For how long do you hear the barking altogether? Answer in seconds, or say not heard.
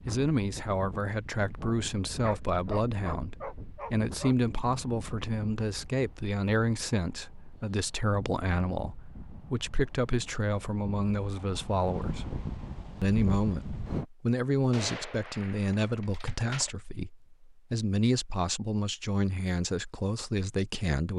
2 s.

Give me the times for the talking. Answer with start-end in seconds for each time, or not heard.
0.1-12.3, 13.0-21.1.